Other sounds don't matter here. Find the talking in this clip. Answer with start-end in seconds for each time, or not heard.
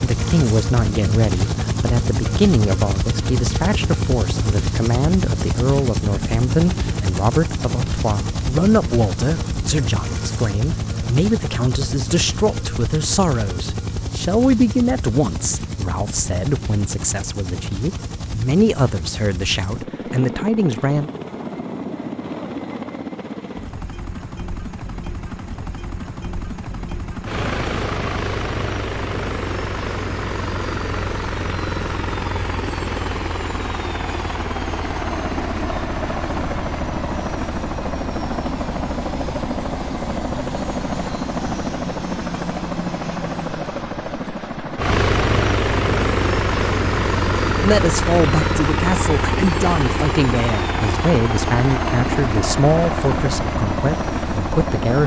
0.0-21.1, 47.6-55.0.